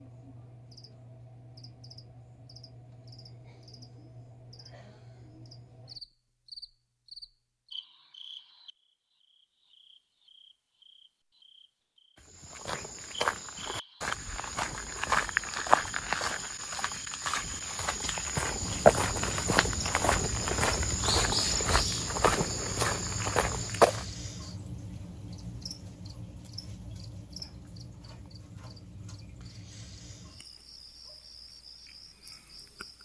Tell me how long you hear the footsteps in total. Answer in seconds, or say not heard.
12 s.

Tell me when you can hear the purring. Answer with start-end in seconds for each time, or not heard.
not heard.